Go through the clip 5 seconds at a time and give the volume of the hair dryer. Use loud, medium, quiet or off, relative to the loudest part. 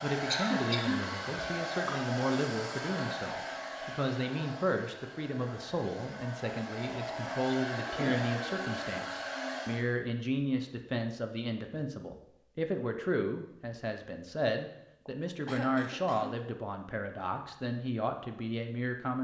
loud, loud, off, off.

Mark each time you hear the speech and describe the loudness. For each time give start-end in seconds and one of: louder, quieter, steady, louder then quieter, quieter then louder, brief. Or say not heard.
0.0-19.1 steady.